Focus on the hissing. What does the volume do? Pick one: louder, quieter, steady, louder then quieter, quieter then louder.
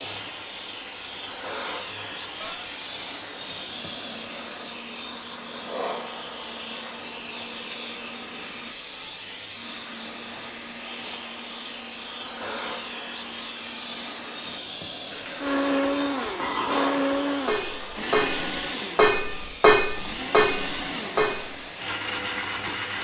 steady.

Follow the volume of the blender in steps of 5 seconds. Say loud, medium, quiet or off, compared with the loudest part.
quiet, quiet, quiet, loud, loud.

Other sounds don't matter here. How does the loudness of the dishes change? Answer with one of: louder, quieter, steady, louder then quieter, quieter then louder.
louder.